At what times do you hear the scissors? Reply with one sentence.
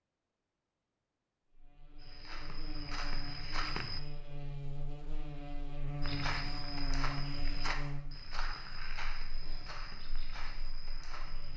You can't hear the scissors here.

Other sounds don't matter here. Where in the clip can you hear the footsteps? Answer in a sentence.
The footsteps can be heard from 1.9 to 4.0 s and from 6.0 to 11.5 s.